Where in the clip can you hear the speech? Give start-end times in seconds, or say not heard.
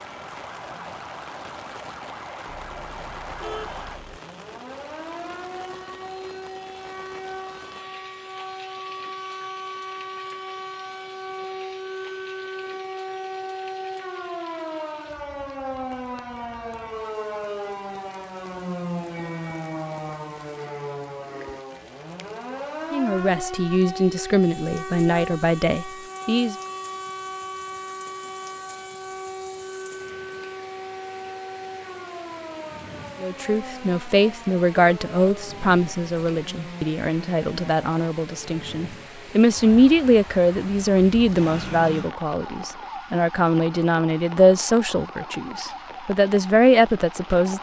22.9-26.6, 33.2-47.5.